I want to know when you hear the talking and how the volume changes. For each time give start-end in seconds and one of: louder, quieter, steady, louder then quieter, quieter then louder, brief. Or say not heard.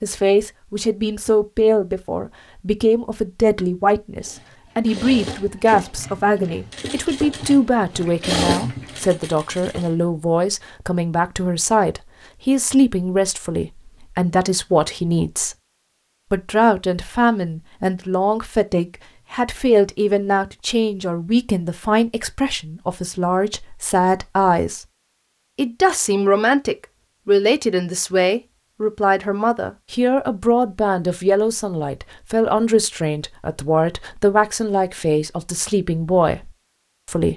0.0-15.6 steady
16.3-24.9 steady
25.6-37.3 steady.